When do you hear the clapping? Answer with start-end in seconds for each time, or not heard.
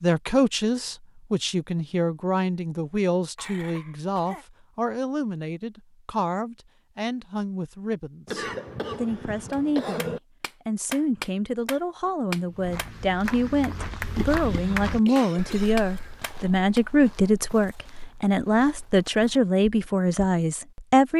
9.5-16.8.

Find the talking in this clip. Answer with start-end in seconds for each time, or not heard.
0.0-21.1.